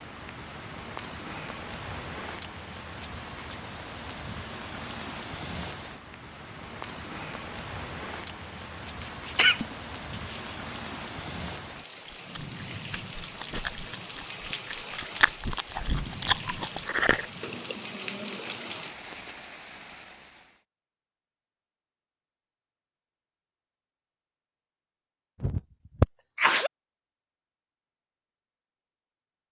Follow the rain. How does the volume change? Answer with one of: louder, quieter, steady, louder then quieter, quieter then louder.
steady.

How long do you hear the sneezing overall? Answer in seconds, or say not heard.
3 s.